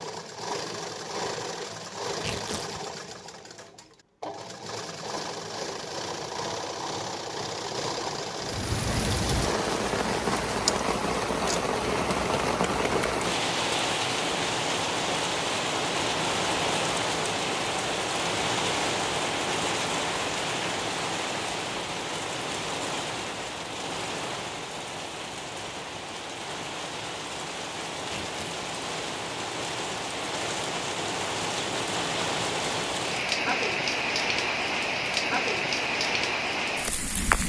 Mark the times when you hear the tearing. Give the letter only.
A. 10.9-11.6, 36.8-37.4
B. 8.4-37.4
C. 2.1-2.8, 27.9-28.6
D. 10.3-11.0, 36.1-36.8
C.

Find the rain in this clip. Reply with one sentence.
You can hear the rain from 8.4 to 37.4 s.